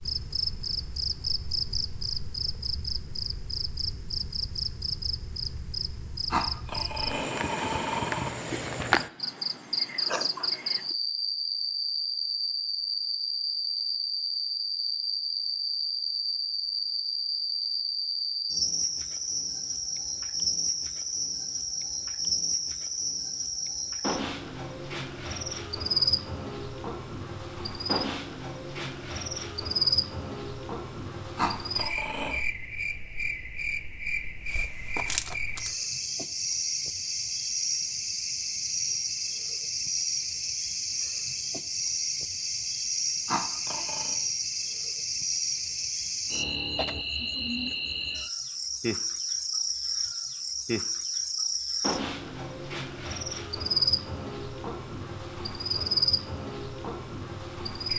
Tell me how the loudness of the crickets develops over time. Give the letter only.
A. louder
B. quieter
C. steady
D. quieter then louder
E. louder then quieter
C.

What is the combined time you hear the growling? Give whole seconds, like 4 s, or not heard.
4 s.